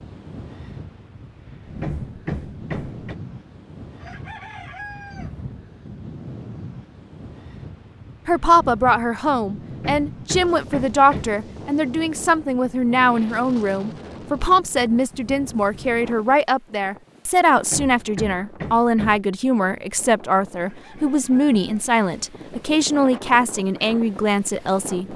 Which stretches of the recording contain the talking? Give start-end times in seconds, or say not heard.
8.2-25.1.